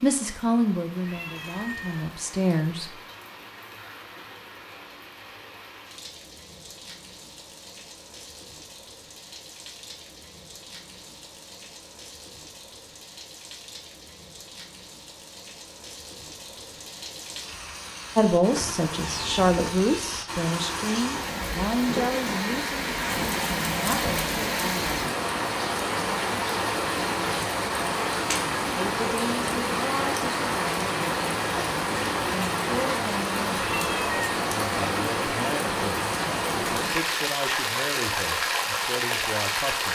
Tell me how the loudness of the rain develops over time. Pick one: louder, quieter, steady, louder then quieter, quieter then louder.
louder.